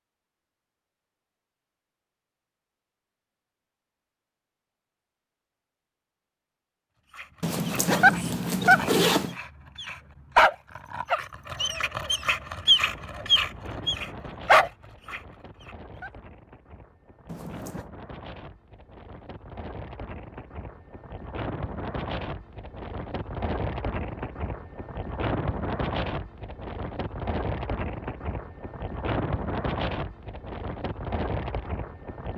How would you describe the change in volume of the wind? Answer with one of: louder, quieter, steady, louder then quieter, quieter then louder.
louder.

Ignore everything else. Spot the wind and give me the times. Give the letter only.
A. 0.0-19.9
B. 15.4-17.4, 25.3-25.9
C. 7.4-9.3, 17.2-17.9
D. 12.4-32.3
D.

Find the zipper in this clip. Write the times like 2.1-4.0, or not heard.
7.4-9.3, 17.2-17.9.